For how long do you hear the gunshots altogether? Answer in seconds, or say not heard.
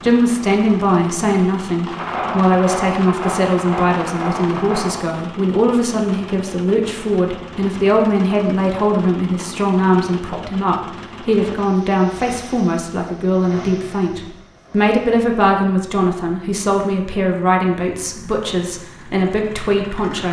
3 s.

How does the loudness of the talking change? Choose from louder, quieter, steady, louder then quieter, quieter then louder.
steady.